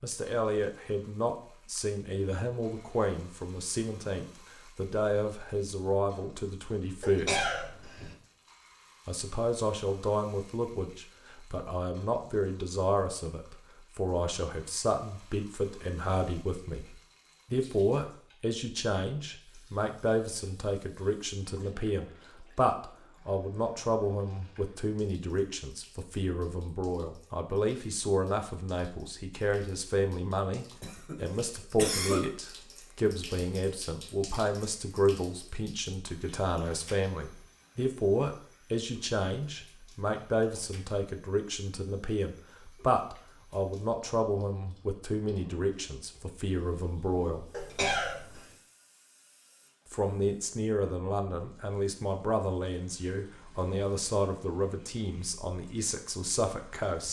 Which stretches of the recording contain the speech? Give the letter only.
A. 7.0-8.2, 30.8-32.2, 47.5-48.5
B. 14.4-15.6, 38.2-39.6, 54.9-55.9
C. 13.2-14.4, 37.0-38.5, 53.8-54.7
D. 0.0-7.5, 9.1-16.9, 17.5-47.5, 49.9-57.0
D.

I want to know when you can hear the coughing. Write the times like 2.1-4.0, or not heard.
7.0-8.2, 30.8-32.2, 47.5-48.5.